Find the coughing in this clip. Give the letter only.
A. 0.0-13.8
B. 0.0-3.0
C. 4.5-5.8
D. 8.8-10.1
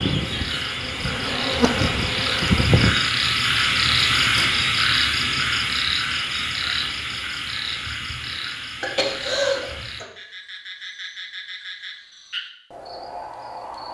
D.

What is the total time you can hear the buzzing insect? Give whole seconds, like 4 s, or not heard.
3 s.